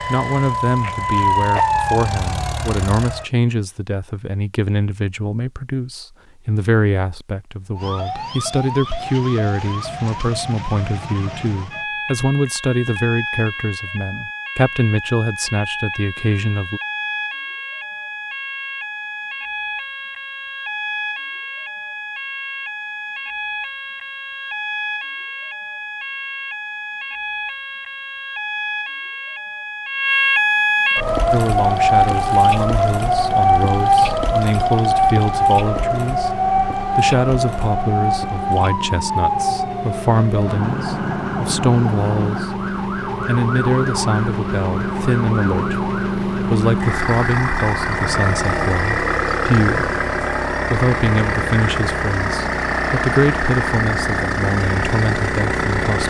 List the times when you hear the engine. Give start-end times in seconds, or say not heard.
0.0-3.2, 30.9-56.0.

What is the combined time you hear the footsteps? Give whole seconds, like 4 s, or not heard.
not heard.